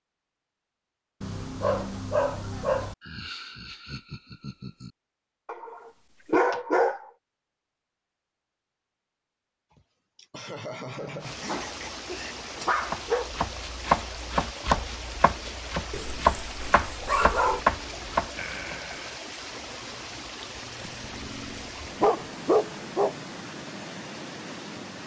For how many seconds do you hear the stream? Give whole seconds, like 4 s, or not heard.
14 s.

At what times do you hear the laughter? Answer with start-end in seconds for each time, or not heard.
3.0-5.0, 9.7-12.3, 18.4-19.2.